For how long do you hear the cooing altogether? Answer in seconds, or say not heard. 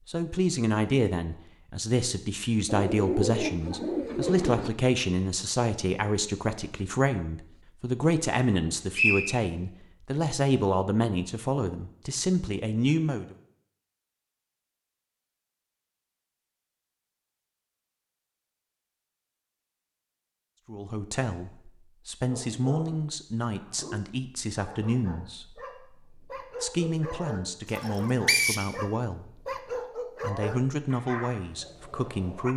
2 s.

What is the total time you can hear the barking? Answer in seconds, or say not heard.
10 s.